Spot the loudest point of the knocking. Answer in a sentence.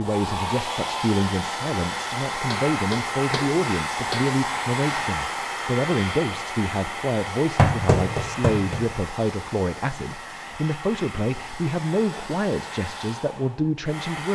The volume of the knocking peaks at 8 seconds.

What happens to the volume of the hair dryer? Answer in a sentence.
The volume of the hair dryer goes down.